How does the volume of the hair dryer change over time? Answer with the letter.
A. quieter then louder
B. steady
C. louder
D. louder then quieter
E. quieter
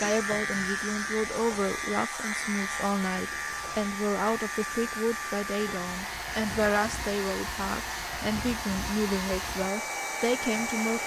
C.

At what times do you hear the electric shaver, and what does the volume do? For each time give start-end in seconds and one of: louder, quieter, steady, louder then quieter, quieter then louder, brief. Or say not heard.
0.0-10.9 quieter.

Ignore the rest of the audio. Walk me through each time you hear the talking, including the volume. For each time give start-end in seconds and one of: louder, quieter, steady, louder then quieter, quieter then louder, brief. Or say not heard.
0.0-11.0 steady.